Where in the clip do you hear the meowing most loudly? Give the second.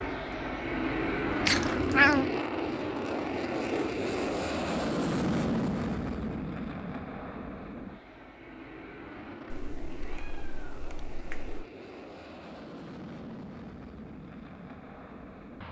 2 s.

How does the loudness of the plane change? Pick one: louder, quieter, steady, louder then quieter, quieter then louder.
quieter.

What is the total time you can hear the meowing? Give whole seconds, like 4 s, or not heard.
3 s.